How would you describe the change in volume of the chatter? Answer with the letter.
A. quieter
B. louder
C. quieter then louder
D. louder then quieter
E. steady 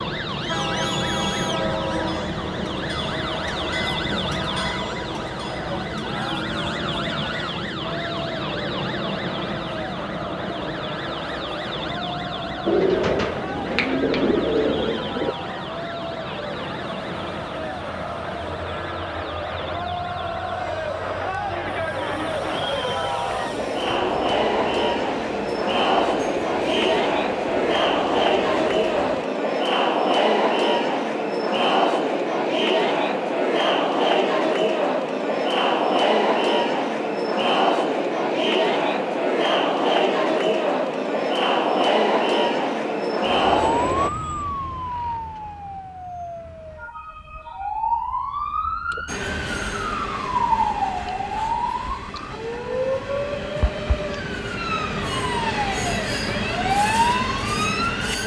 B.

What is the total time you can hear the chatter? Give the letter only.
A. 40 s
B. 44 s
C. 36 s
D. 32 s
B.